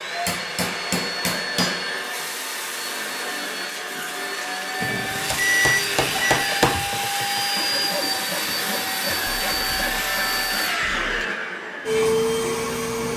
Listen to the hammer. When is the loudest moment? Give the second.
6 s.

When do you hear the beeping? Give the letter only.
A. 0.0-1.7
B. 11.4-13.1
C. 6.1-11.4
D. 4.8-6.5
D.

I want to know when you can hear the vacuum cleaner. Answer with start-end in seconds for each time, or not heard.
0.0-13.1.